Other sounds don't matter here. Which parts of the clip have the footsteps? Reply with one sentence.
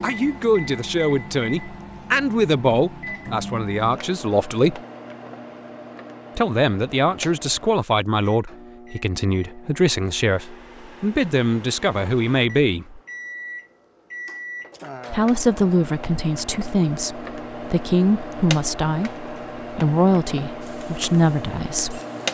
The footsteps can't be heard in this clip.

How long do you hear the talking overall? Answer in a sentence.
You can hear the talking for 18 seconds altogether.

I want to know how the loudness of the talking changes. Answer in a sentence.
The volume of the talking stays about the same.